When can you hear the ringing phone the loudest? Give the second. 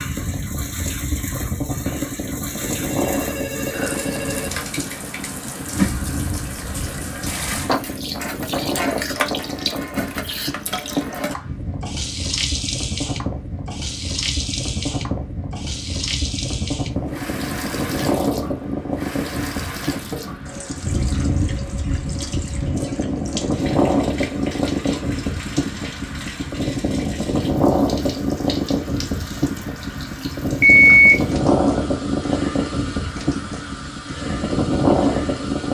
31 s.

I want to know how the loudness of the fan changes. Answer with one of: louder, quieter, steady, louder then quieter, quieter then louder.
louder.